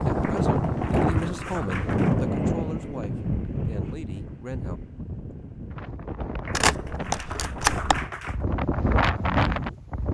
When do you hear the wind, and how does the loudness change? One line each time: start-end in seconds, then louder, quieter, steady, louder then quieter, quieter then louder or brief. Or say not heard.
0.0-10.0 quieter then louder.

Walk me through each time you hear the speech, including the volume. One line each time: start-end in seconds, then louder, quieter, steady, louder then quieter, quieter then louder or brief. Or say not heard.
0.1-4.8 quieter.